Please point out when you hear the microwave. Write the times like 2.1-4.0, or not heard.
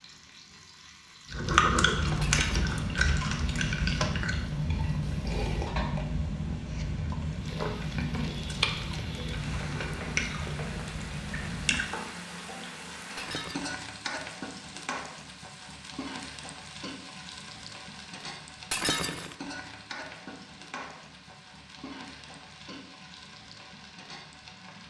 not heard.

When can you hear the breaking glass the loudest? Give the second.
19 s.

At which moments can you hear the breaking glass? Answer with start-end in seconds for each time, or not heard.
2.2-2.8, 13.2-13.8, 18.7-19.4.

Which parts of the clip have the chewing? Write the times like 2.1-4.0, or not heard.
1.3-11.9.